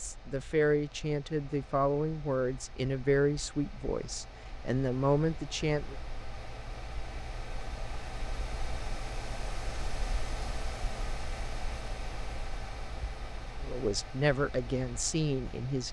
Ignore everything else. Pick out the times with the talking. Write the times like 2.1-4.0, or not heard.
0.0-6.0, 13.6-15.8.